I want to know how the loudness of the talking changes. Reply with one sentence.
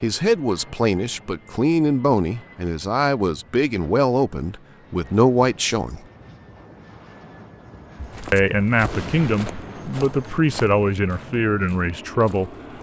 The volume of the talking stays about the same.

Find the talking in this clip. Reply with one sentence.
You can hear the talking from 0.0 to 6.0 s and from 8.3 to 12.5 s.